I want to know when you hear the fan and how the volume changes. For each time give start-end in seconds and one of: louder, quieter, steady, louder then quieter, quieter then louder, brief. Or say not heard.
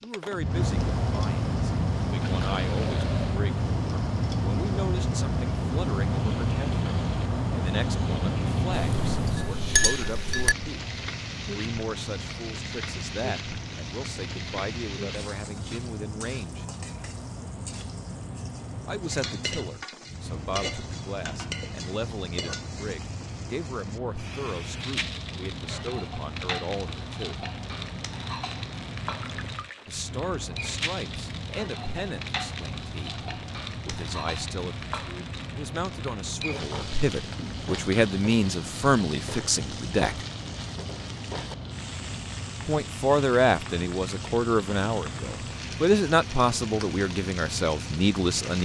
0.0-48.5 quieter.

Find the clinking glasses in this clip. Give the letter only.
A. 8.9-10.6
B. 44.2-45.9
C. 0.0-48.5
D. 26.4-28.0
A.